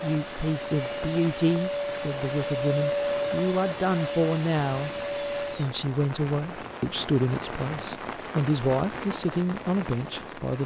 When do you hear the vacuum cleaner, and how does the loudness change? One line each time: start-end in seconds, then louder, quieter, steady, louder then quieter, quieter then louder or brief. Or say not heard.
0.0-5.7 louder then quieter.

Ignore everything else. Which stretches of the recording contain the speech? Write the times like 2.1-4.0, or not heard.
0.0-4.9, 5.5-10.6.